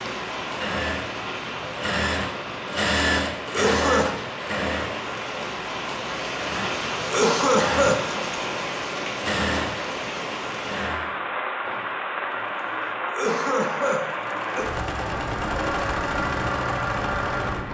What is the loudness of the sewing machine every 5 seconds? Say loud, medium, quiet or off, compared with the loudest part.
loud, loud, medium, loud.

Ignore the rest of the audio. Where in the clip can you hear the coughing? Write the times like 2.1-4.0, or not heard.
3.4-4.2, 7.0-8.1, 13.0-14.7.